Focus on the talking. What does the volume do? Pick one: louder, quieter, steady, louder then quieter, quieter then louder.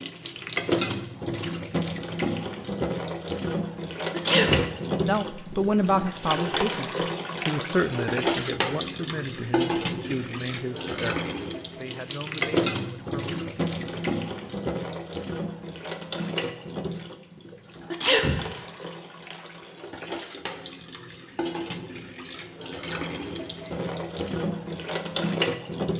quieter.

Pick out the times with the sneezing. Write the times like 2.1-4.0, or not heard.
4.1-4.7, 17.9-18.4.